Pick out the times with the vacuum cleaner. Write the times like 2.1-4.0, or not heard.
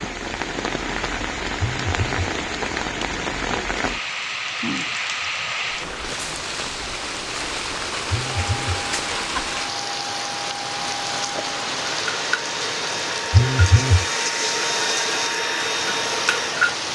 8.3-16.9.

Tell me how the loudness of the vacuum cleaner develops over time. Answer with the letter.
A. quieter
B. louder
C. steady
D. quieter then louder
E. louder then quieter
B.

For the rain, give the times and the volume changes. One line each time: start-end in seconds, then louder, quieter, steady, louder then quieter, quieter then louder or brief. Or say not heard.
0.0-16.9 steady.